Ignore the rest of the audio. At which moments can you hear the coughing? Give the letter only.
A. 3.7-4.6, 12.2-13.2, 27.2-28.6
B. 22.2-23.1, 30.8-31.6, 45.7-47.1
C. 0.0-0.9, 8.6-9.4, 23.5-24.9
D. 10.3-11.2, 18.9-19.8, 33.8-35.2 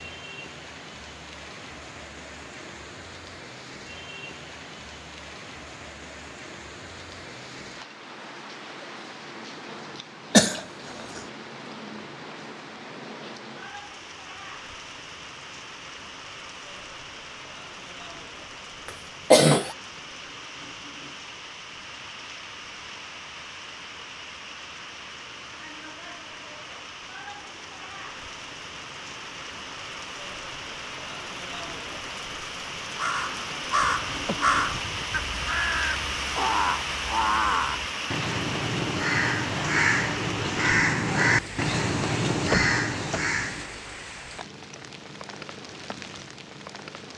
D.